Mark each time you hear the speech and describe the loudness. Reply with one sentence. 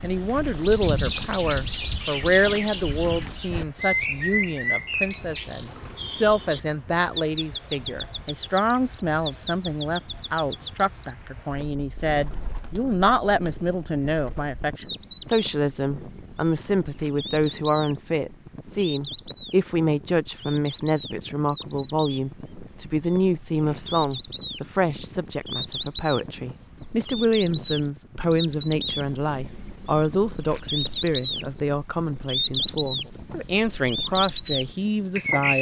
The speech can be heard from 0.0 to 35.5 s, at a steady volume.